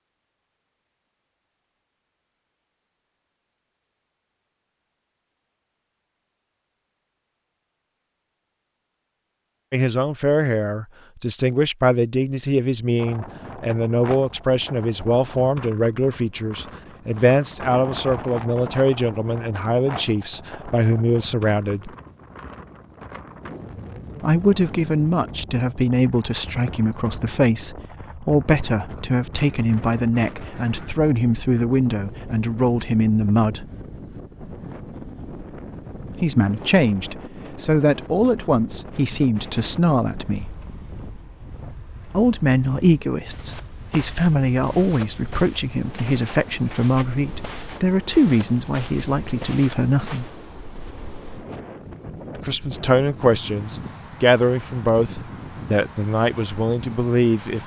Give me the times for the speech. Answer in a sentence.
You can hear the speech from 9.7 to 21.9 s, from 24.2 to 33.6 s, from 36.1 to 40.5 s, from 42.0 to 50.3 s and from 52.5 to 57.6 s.